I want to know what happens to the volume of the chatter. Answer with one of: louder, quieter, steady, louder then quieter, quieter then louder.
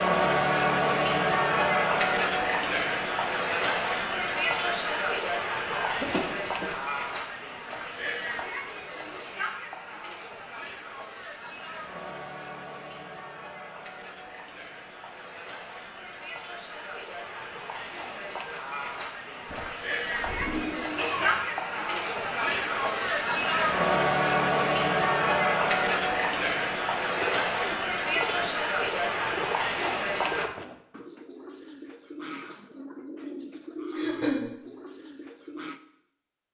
quieter then louder.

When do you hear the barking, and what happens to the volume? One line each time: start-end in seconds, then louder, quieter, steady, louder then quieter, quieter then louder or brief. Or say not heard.
not heard.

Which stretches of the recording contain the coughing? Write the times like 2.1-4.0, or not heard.
5.7-6.7, 19.4-21.4, 34.0-34.5.